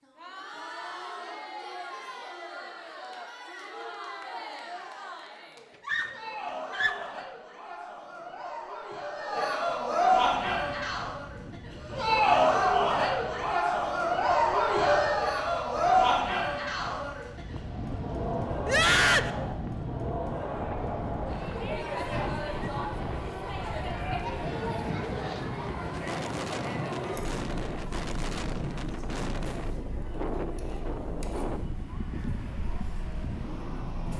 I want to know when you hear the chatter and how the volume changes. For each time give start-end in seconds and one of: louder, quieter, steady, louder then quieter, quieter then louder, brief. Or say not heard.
0.0-34.1 louder then quieter.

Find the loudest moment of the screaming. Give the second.
19 s.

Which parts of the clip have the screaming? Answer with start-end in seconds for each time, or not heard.
5.8-7.2, 18.6-19.3.